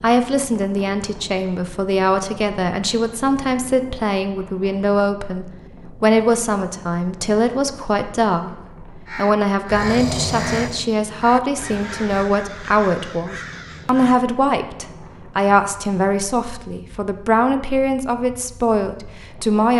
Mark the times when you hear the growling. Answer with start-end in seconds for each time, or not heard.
9.7-10.8.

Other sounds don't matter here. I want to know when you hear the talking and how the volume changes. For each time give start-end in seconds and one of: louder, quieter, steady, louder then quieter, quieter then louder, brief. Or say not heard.
0.0-19.7 steady.